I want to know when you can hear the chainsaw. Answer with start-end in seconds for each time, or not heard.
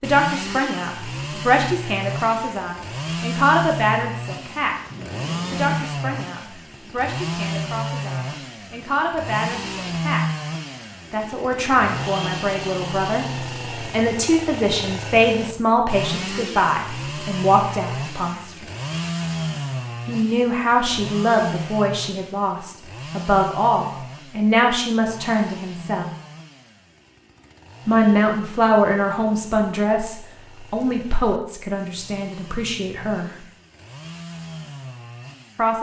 0.0-35.7.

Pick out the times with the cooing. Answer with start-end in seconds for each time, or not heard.
not heard.